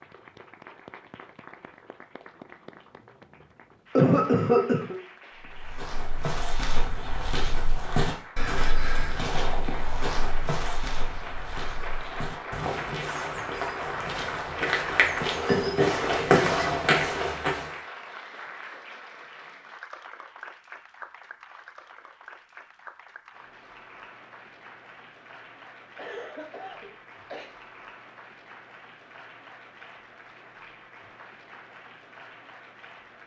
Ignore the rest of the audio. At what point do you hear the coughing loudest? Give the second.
4 s.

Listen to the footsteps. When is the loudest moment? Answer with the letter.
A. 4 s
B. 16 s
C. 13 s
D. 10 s
B.